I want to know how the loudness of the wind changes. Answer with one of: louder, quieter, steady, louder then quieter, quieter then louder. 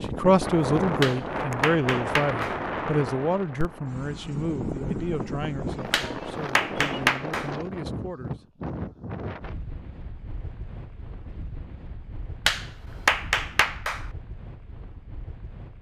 quieter.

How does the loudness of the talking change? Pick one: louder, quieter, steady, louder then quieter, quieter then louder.
quieter.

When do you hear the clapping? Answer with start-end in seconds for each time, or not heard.
1.0-2.6, 5.9-7.5, 12.4-14.1.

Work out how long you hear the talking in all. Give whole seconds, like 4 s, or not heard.
8 s.